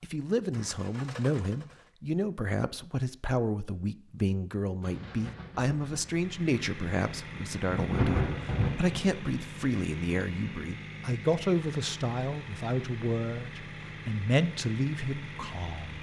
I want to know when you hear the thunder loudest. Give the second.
8 s.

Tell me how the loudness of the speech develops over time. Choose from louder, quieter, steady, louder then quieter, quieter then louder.
steady.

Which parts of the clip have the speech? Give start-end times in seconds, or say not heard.
0.0-15.9.